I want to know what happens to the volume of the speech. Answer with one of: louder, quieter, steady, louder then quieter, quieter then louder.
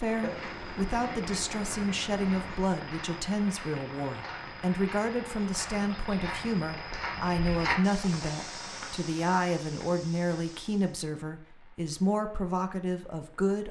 steady.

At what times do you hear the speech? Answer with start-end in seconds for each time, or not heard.
0.0-13.6.